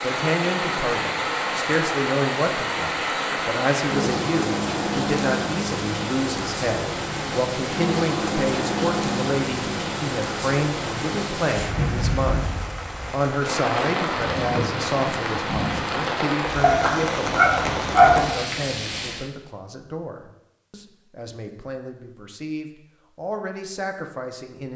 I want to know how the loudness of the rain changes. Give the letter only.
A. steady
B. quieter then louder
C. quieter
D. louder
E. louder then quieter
A.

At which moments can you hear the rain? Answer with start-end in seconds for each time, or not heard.
0.0-19.3.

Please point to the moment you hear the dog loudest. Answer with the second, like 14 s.
18 s.